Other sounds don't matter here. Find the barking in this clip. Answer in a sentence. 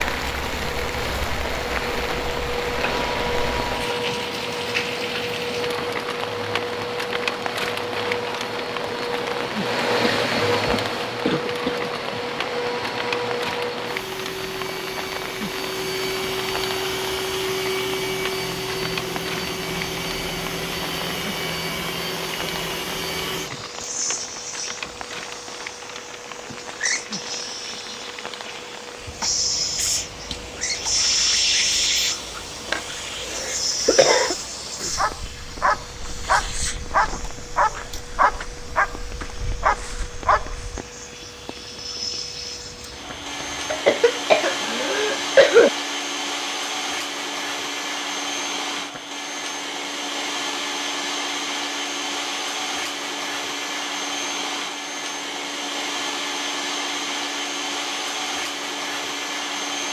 You can hear the barking from 34.9 to 40.8 s.